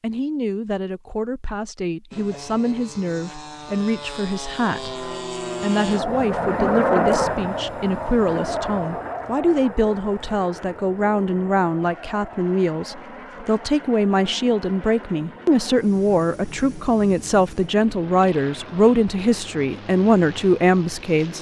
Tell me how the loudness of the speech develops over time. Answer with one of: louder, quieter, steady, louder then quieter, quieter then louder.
louder.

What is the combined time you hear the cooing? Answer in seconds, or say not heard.
not heard.